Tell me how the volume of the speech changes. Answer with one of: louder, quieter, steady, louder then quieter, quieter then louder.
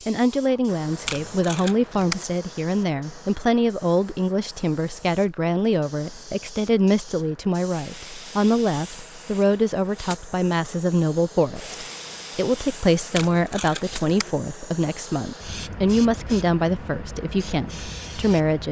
steady.